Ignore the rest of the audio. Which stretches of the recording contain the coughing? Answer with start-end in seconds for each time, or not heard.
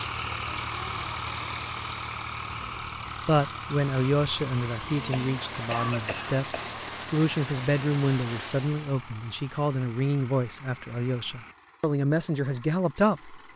5.1-6.7.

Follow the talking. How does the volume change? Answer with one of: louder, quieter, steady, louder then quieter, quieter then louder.
steady.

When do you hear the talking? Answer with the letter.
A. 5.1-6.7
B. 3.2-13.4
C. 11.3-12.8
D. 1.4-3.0
B.